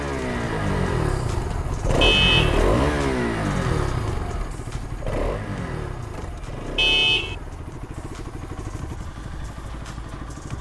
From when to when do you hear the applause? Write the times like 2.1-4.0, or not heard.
not heard.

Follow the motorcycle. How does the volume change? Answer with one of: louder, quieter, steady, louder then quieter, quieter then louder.
quieter.